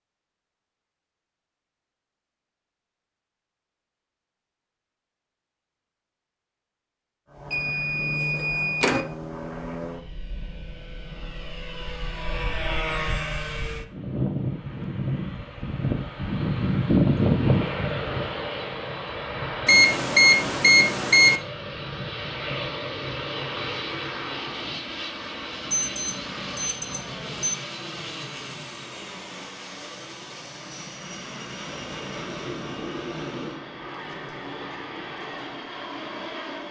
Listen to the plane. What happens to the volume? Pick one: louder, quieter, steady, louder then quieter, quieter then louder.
louder then quieter.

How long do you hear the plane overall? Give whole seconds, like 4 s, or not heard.
29 s.